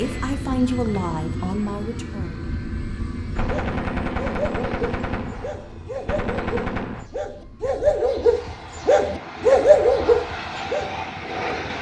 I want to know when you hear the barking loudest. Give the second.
10 s.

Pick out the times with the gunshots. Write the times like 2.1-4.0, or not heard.
3.4-7.0.